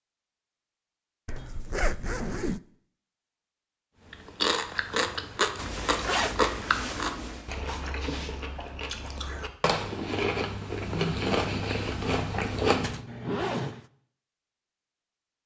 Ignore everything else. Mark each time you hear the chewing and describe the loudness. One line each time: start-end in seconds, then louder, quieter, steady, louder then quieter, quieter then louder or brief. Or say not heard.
4.1-13.0 quieter then louder.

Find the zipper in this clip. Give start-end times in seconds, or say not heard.
1.2-2.6, 5.5-7.5, 12.8-13.8.